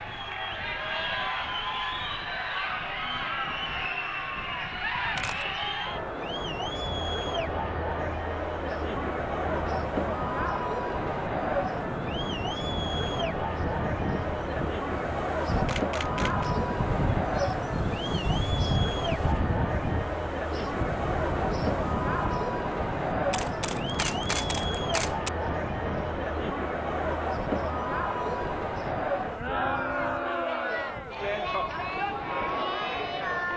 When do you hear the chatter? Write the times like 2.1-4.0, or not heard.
0.0-33.5.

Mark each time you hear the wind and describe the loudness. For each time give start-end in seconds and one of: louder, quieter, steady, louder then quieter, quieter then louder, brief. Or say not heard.
0.0-33.5 louder then quieter.